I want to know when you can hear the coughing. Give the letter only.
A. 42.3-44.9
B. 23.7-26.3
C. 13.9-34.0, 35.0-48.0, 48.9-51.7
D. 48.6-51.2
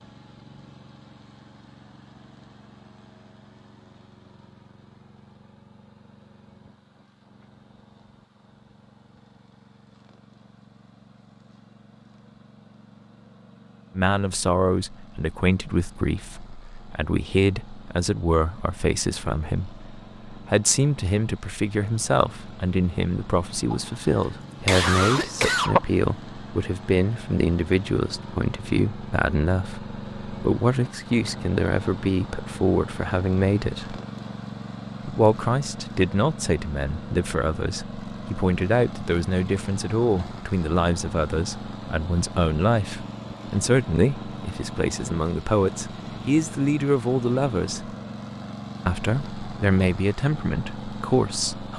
B.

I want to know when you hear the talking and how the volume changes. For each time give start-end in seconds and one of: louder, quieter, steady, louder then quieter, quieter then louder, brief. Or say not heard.
13.9-34.0 steady
35.0-48.0 steady
48.9-51.7 brief.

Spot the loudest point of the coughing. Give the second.
26 s.